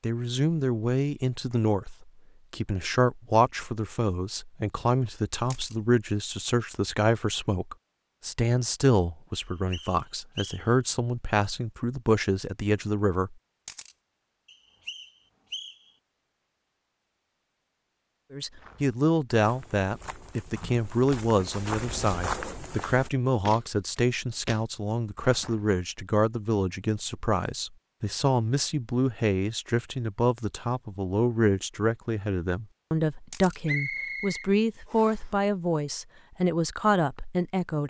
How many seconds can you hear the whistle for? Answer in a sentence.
The whistle can be heard for 4 seconds in total.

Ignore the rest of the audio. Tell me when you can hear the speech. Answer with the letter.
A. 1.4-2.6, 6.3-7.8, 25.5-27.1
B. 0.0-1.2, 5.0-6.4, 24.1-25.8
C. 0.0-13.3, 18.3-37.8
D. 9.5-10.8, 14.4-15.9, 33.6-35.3
C.